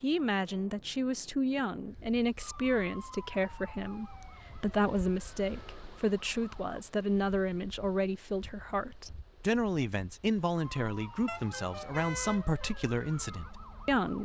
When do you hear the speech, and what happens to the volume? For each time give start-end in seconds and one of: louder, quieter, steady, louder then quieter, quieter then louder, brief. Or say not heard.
0.0-14.2 steady.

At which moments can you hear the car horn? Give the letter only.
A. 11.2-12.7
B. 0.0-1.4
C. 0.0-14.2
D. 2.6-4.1
A.